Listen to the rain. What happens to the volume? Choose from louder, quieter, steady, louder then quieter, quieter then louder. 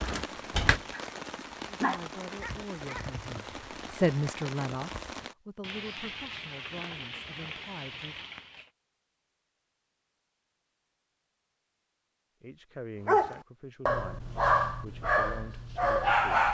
steady.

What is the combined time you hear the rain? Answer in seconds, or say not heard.
9 s.